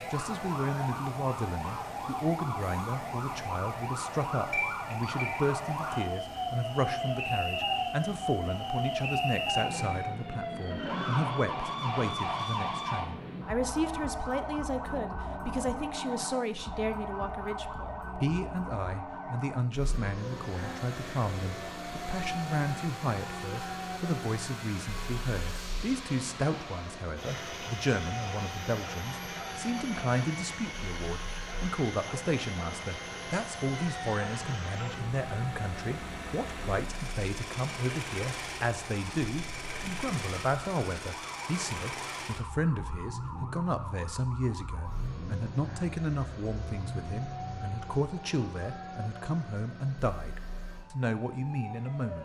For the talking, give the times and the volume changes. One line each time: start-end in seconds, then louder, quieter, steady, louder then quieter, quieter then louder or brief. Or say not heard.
0.1-52.2 steady.